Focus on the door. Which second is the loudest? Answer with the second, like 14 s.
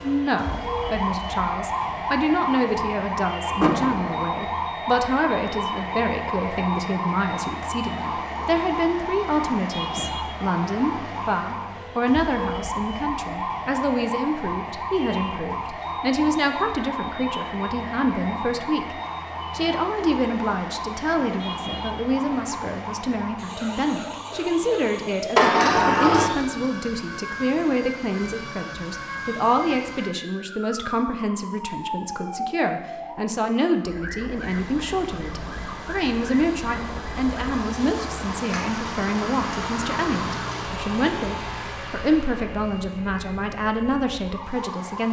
26 s.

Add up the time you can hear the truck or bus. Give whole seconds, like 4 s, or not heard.
11 s.